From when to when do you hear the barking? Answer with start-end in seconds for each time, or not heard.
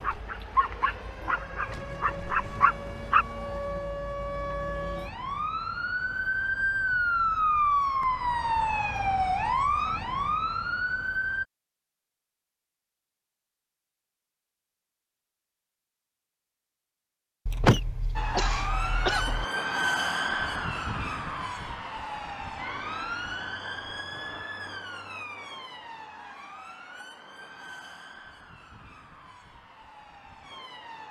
0.0-3.2.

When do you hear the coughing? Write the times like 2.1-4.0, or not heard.
17.4-19.4.